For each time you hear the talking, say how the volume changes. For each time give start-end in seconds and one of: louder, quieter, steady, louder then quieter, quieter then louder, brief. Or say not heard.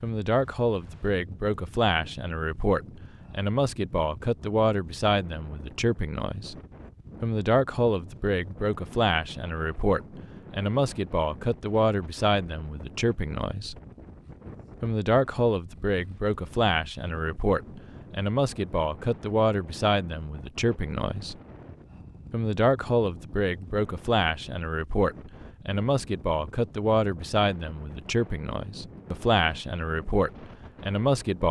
0.0-6.5 steady
7.2-13.8 steady
14.8-21.4 steady
22.3-31.4 steady.